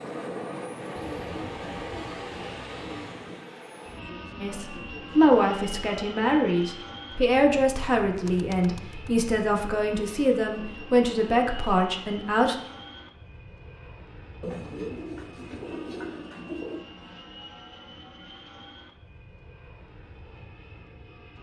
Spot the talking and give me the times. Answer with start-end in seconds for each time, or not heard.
4.4-12.6.